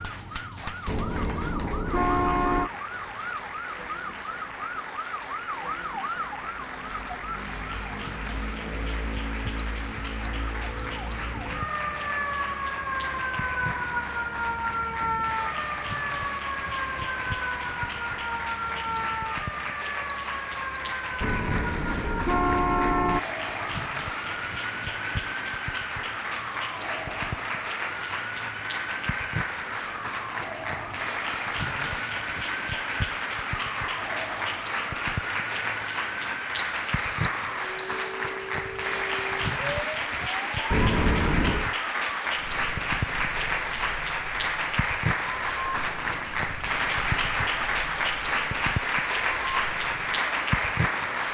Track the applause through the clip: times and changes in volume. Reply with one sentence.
The applause can be heard from 0.0 to 51.2 s, getting louder.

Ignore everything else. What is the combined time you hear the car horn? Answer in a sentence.
You can hear the car horn for 5 seconds altogether.